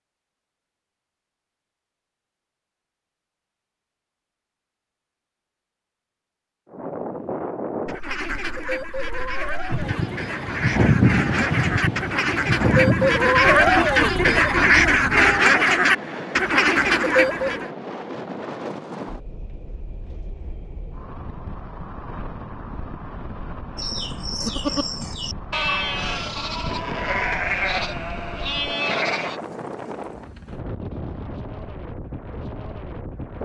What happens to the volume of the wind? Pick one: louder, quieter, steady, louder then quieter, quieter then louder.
quieter.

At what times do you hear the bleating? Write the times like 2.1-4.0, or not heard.
23.8-29.4.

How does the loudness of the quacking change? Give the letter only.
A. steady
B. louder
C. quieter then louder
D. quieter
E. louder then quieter
B.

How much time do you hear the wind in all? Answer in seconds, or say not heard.
27 s.